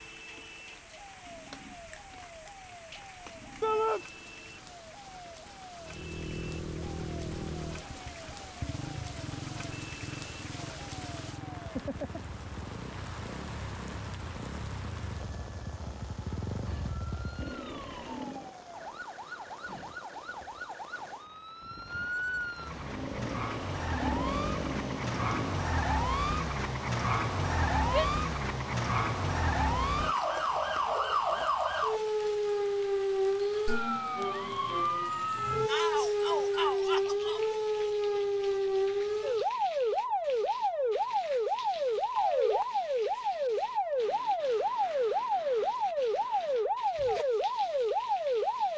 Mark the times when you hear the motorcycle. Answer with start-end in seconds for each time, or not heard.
5.8-18.6, 22.7-25.7.